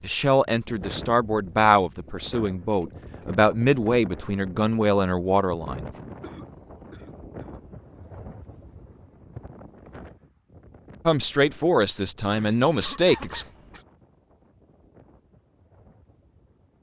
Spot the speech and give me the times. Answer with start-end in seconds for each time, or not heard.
0.0-5.9, 11.1-13.4.